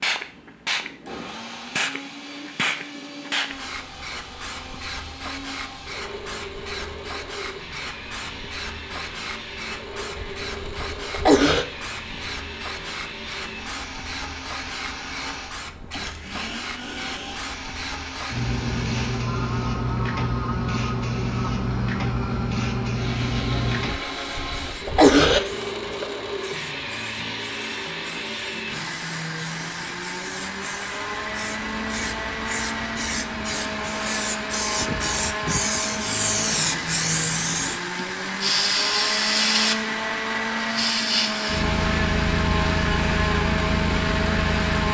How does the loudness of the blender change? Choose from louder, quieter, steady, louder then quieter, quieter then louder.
louder.